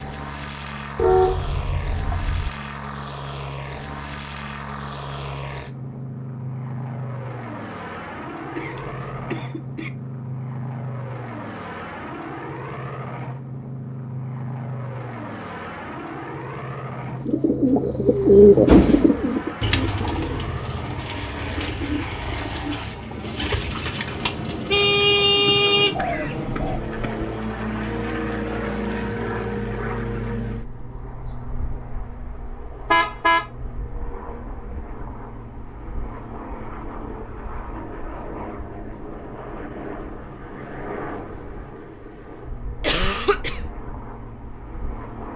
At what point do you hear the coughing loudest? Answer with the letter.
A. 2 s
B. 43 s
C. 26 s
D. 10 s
B.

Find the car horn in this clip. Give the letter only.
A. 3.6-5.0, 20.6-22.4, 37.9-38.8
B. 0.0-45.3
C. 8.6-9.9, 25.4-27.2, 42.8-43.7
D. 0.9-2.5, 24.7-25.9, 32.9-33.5
D.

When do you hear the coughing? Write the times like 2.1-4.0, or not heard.
8.6-9.9, 25.4-27.2, 42.8-43.7.